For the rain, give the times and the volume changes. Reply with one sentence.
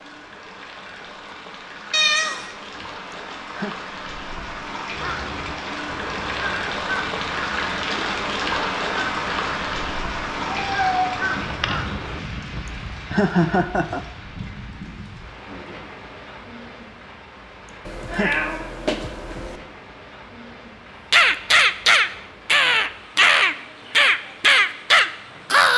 The rain can be heard from 0.0 to 25.7 s, getting louder then quieter.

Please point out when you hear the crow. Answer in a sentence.
The crow can be heard from 4.9 to 12.7 s and from 21.1 to 25.7 s.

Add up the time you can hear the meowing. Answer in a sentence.
The meowing can be heard for 4 seconds in total.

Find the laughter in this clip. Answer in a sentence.
The laughter can be heard from 3.1 to 3.8 s, from 12.7 to 14.1 s and from 17.6 to 18.4 s.